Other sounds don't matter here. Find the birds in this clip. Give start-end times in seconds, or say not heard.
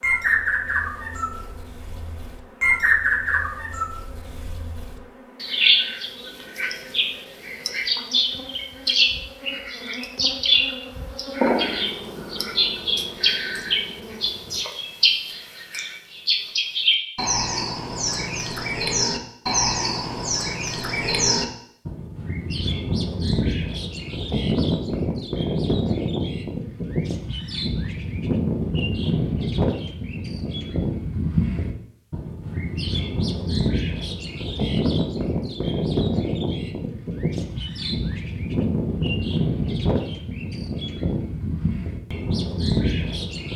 0.0-43.5.